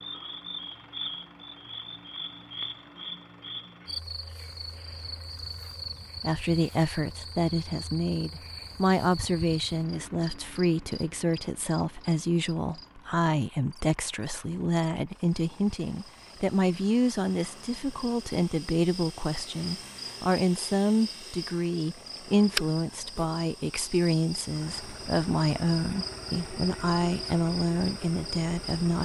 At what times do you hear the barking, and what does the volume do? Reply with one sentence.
You can't hear the barking here.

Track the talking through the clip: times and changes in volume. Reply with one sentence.
You can hear the talking from 6.2 to 29.0 s, at a steady volume.